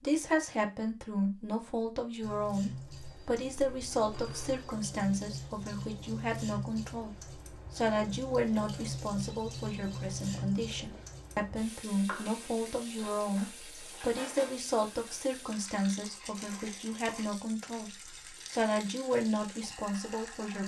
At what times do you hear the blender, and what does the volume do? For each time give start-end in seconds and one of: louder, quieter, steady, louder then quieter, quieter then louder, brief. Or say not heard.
not heard.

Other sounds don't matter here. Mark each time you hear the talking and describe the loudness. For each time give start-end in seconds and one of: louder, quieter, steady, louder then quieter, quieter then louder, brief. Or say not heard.
0.0-20.6 steady.